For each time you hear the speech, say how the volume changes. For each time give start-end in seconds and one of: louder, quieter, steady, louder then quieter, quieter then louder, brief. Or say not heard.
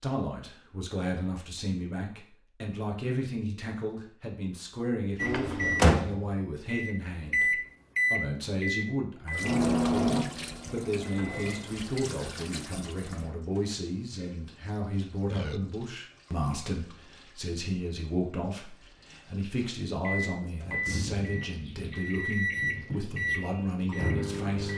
0.0-24.7 steady.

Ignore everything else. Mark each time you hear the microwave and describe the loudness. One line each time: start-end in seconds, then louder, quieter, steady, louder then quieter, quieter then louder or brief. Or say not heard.
5.2-11.9 quieter
20.0-24.7 quieter then louder.